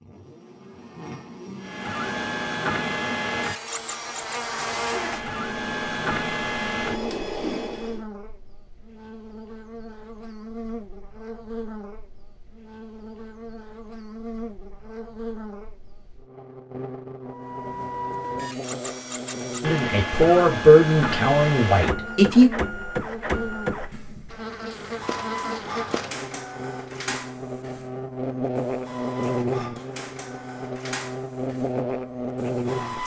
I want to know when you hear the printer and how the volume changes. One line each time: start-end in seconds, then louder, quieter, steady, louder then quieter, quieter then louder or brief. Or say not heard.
1.6-8.0 quieter then louder
17.2-33.0 quieter.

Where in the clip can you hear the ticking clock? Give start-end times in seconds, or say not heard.
not heard.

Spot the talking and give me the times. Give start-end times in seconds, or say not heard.
19.6-22.5.